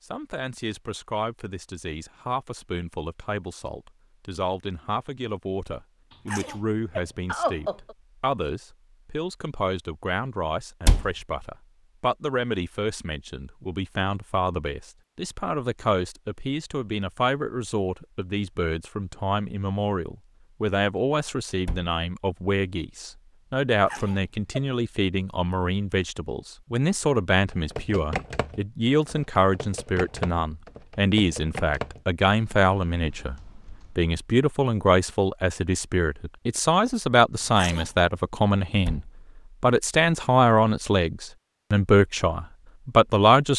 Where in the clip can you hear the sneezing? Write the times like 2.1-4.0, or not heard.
6.1-8.0, 23.7-24.6, 37.4-37.9.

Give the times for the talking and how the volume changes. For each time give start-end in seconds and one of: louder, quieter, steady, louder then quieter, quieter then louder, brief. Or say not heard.
0.0-43.5 louder.